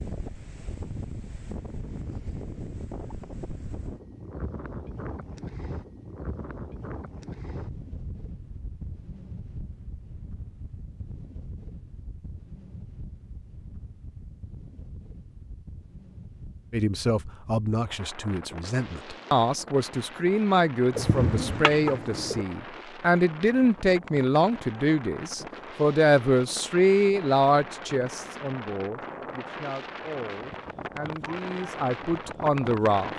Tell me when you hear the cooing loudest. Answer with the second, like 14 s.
21 s.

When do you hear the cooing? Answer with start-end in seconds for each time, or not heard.
20.9-22.4.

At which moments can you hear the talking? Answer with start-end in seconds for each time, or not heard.
16.7-33.1.